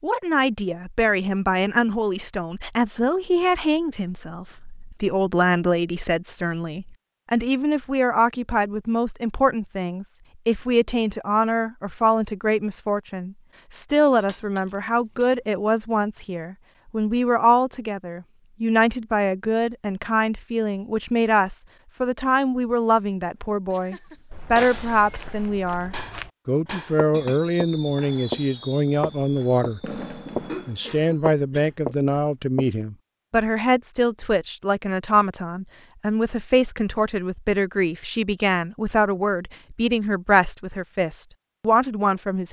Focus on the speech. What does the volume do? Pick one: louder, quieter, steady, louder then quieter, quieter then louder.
steady.